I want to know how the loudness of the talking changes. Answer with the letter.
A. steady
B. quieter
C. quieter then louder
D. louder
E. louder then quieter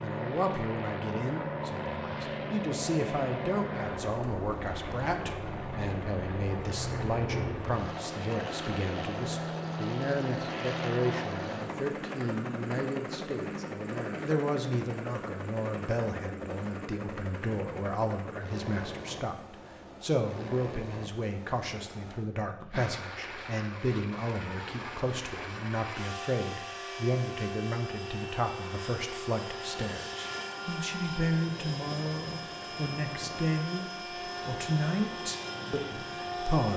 A.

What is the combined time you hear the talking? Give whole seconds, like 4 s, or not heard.
37 s.